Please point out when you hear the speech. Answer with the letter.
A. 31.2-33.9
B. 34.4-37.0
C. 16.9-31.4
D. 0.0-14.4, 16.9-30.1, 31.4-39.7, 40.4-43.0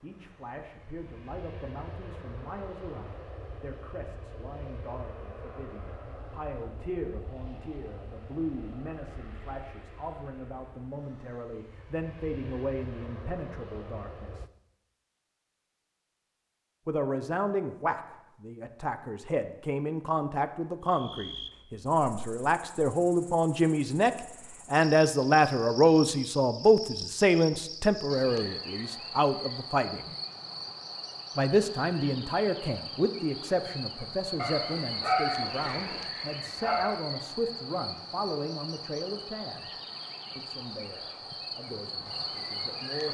D.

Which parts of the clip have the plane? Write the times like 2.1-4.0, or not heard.
0.0-14.5.